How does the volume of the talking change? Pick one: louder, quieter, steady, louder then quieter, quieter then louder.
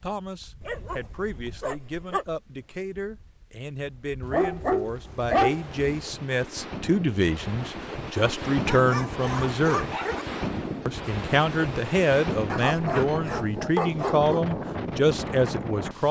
louder.